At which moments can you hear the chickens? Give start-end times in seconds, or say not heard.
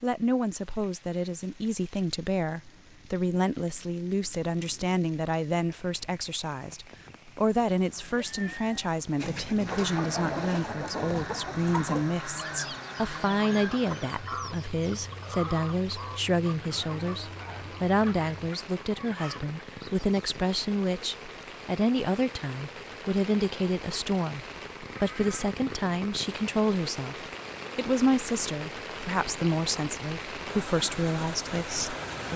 9.2-20.4.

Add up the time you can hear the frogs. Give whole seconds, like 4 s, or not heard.
not heard.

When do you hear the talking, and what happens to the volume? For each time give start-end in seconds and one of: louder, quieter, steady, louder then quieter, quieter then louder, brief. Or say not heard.
0.0-32.3 steady.